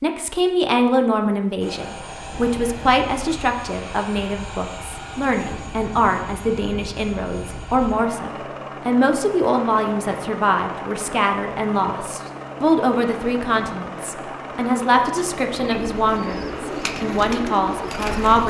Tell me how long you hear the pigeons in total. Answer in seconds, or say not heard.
3 s.